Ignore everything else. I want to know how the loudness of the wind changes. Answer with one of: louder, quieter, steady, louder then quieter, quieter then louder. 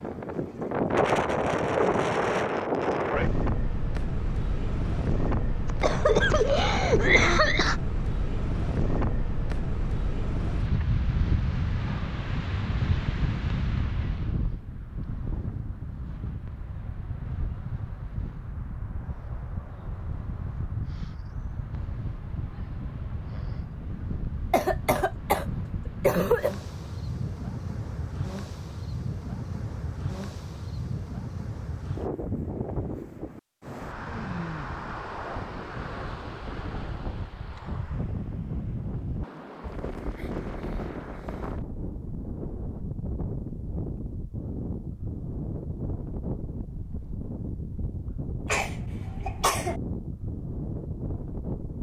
quieter.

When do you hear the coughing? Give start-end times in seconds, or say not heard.
5.7-7.8, 24.5-26.6, 48.5-49.8.